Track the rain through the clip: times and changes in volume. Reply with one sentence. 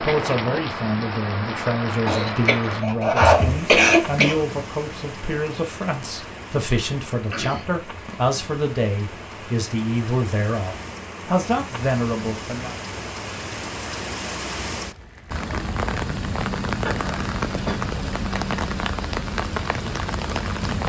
The rain can be heard from 0.0 to 20.8 s, getting quieter then louder.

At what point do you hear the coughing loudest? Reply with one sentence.
The volume of the coughing peaks at 4 seconds.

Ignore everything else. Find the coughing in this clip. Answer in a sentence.
The coughing can be heard from 2.0 to 4.3 s, from 7.2 to 8.2 s and from 16.9 to 17.8 s.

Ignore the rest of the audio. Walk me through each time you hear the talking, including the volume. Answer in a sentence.
The talking can be heard from 0.0 to 12.8 s, at a steady volume.